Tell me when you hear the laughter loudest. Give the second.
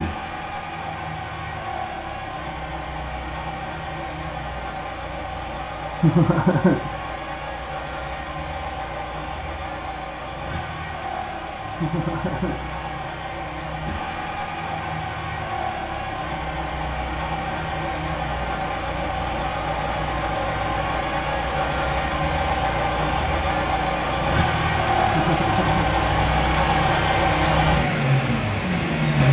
6 s.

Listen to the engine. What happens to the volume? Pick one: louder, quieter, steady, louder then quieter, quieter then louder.
louder.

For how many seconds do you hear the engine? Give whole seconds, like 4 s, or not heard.
29 s.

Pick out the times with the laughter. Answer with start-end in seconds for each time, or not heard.
6.0-6.9, 11.8-12.7, 25.1-25.9.